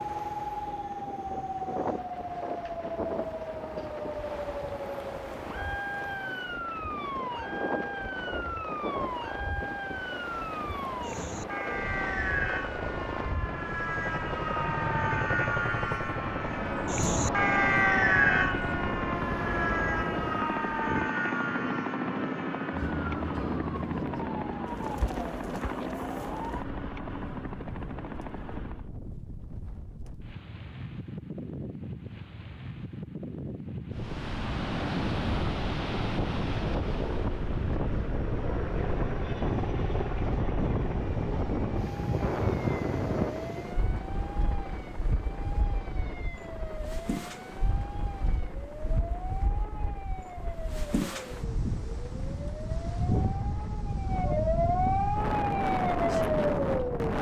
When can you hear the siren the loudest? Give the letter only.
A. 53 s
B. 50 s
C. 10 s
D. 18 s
D.